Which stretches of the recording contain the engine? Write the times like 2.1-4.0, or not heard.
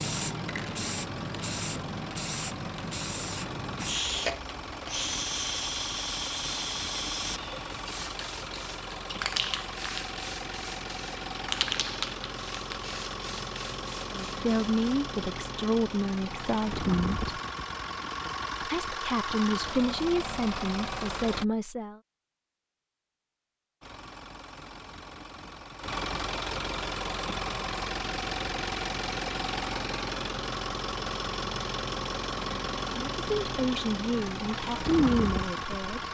0.0-21.4, 23.8-36.0.